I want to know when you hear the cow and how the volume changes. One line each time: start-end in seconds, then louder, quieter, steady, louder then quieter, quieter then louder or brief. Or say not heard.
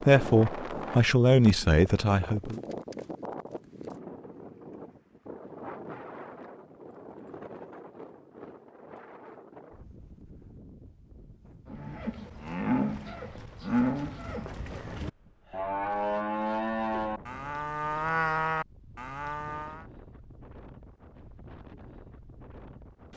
11.7-19.9 steady.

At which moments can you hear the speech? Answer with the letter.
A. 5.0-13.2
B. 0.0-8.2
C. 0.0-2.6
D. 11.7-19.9
C.